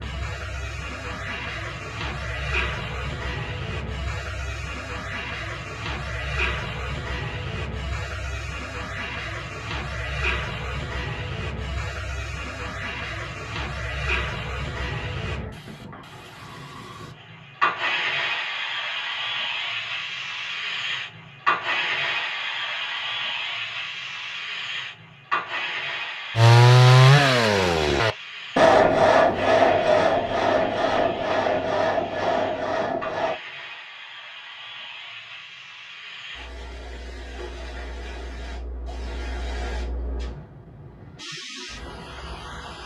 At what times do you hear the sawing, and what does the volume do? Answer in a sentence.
You can hear the sawing from 26.4 to 33.4 s, getting quieter.